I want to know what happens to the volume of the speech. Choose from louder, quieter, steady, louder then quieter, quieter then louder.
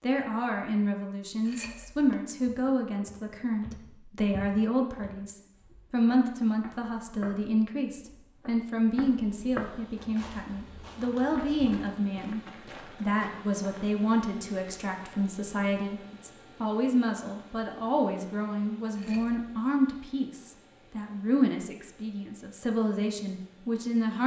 steady.